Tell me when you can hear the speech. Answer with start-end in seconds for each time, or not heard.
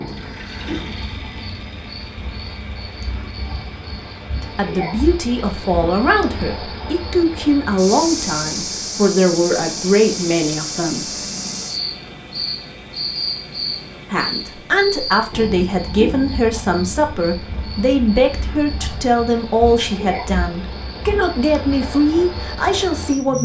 4.4-11.1, 14.1-23.4.